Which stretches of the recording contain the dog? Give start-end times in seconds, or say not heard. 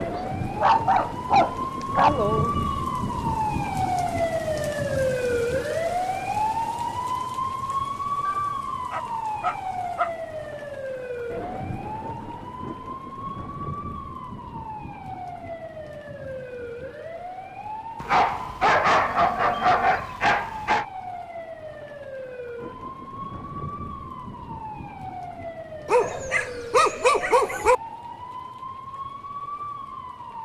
0.1-2.1, 8.2-10.1, 18.0-20.9, 25.9-27.8.